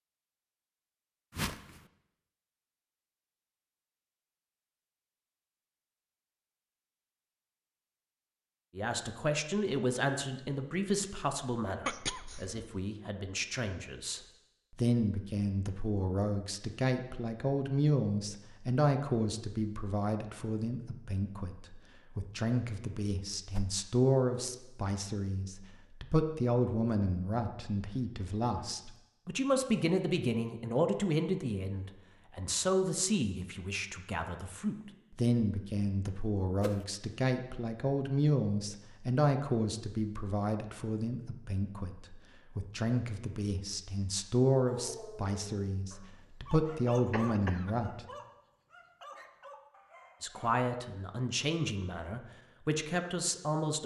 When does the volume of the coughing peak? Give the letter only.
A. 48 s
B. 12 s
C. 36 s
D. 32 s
B.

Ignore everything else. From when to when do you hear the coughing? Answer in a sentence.
The coughing can be heard from 11.8 to 12.8 s and from 47.1 to 47.8 s.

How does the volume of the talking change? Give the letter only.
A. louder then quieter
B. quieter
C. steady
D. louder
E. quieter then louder
C.